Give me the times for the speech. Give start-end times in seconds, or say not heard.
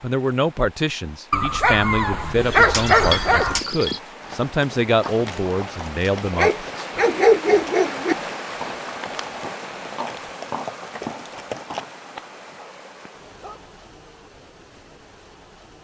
0.0-7.0.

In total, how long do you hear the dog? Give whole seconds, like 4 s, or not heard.
6 s.